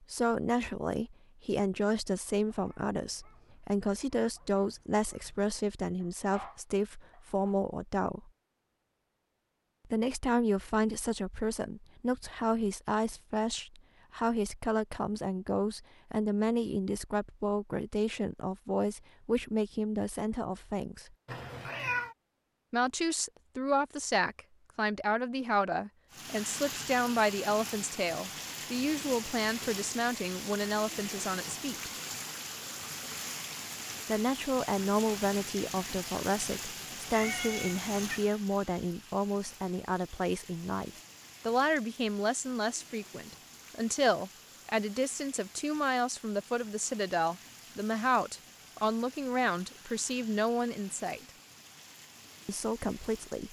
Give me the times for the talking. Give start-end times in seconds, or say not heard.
0.0-8.3, 9.8-21.1, 22.7-31.9, 34.0-51.2, 52.5-53.4.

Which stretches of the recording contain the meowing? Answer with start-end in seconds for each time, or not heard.
21.2-22.1, 37.1-38.2.